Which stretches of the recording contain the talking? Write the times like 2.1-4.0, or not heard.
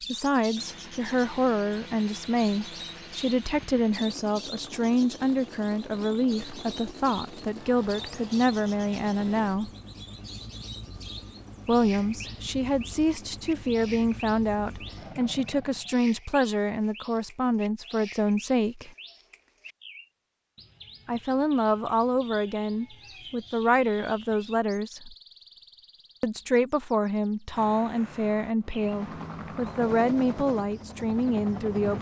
0.1-9.7, 11.7-18.9, 21.1-25.1, 26.2-31.9.